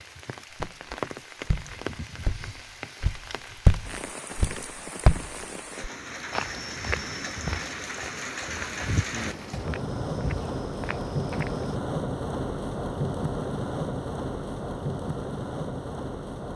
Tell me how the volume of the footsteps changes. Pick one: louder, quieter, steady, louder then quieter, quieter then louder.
quieter.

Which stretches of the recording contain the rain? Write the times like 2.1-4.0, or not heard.
0.0-16.5.